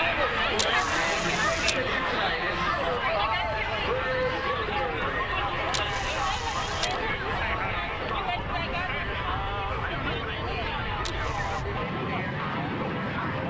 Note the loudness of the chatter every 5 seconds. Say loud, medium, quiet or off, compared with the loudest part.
loud, loud, medium.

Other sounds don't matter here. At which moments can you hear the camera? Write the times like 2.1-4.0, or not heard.
0.6-1.8, 5.7-7.0, 11.1-11.7.